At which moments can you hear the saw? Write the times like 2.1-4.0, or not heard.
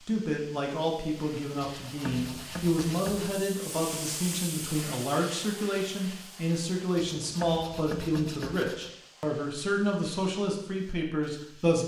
1.8-3.4, 7.0-8.9.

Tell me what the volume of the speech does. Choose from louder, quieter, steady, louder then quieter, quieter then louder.
steady.